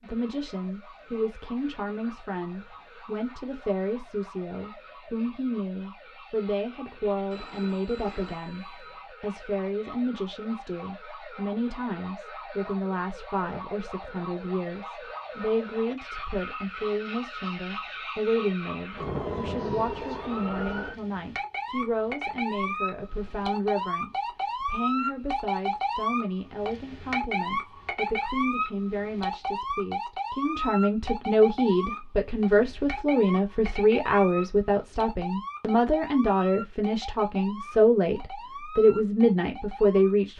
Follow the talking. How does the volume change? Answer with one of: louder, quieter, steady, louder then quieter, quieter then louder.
louder.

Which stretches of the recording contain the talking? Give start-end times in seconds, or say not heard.
0.0-40.3.